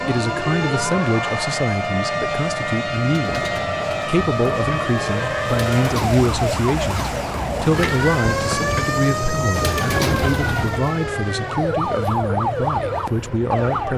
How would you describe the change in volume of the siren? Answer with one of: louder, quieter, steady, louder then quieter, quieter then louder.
steady.